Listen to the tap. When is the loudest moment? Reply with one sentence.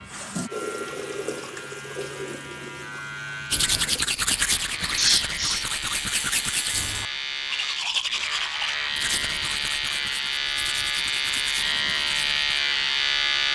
The loudest moment of the tap is at 1 second.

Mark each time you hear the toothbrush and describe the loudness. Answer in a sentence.
You can hear the toothbrush from 3.5 to 12.6 s, getting quieter.